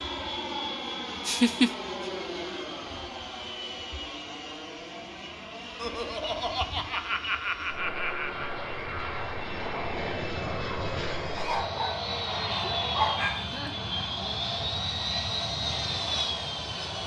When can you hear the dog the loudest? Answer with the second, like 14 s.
13 s.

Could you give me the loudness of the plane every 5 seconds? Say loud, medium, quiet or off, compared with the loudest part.
medium, medium, loud, loud.